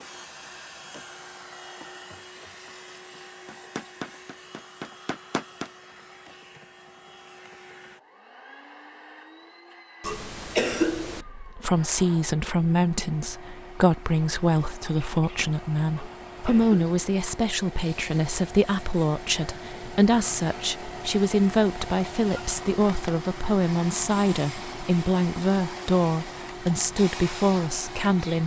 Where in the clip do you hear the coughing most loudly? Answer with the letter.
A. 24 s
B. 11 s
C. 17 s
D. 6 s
B.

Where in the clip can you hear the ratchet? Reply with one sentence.
The ratchet can't be heard in this clip.